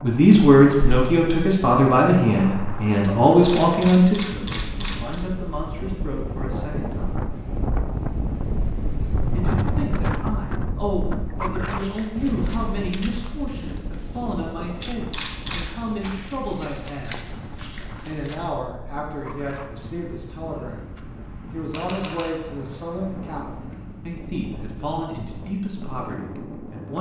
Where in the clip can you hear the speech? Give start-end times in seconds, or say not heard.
0.0-7.2, 9.3-17.1, 18.1-20.9, 21.5-26.9.